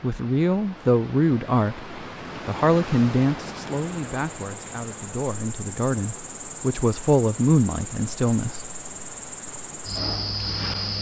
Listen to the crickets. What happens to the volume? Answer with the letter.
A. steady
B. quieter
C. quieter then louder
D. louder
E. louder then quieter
D.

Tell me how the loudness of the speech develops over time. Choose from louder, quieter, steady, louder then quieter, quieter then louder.
quieter then louder.